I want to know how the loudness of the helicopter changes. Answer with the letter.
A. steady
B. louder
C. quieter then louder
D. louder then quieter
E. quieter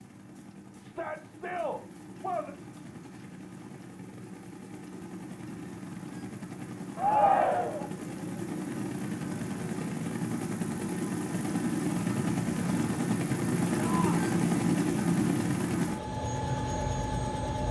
B.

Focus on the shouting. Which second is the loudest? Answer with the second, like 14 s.
7 s.